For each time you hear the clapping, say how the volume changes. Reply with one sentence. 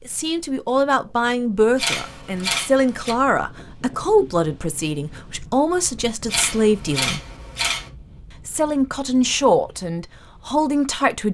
The clapping can't be heard in this clip.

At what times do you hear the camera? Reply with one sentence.
You can hear the camera from 1.8 to 3.1 s and from 6.2 to 7.9 s.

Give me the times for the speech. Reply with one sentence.
The speech can be heard from 0.1 to 7.2 s and from 8.4 to 11.2 s.